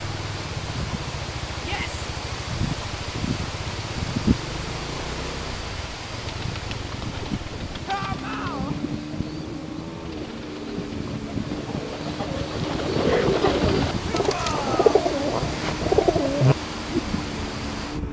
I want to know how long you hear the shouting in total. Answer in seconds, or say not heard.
2 s.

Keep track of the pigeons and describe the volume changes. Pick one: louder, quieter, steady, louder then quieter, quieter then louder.
louder.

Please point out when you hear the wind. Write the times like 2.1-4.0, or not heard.
0.0-18.0.